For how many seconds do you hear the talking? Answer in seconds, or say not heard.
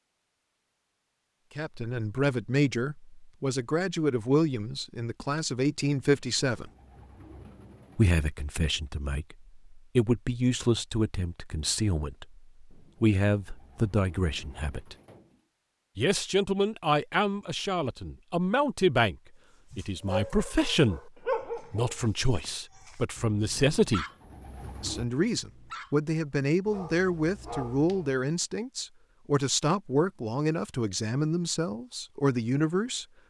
28 s.